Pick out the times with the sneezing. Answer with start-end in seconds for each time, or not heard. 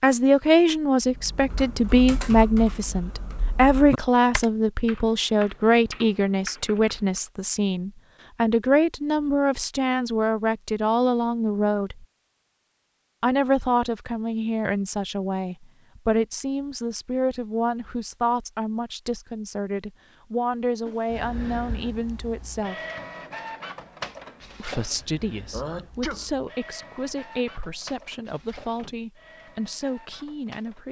25.5-26.3.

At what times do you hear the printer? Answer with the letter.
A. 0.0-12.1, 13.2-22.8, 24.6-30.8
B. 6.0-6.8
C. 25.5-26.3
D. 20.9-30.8
D.